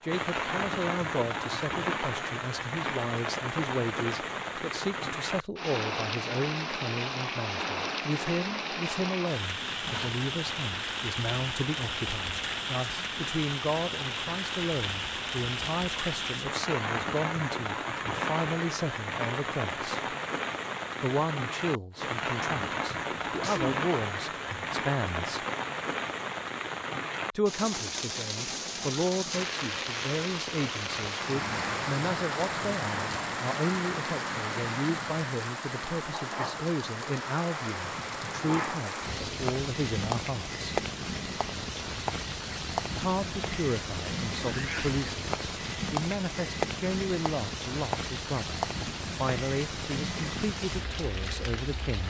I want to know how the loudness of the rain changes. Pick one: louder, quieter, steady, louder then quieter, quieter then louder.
steady.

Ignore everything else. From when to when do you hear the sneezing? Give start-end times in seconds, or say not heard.
9.8-10.2, 23.4-23.8, 44.5-45.0.